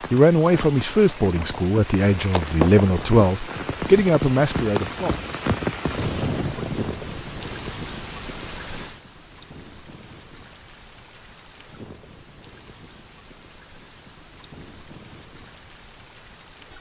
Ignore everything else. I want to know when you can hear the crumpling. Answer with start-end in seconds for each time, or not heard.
0.9-2.9.